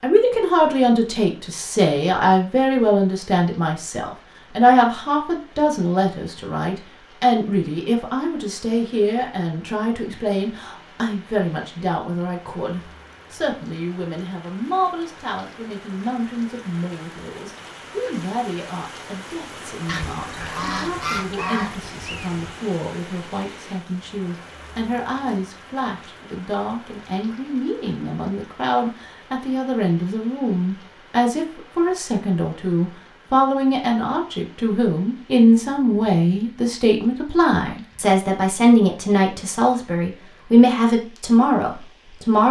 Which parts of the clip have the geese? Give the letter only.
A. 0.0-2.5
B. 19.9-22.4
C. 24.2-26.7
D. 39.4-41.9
B.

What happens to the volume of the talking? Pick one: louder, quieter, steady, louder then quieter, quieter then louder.
quieter then louder.